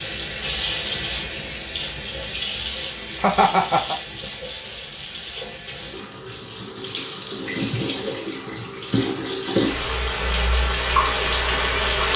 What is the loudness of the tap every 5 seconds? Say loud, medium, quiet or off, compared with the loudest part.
medium, medium, loud.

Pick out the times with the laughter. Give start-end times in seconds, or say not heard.
3.1-4.0.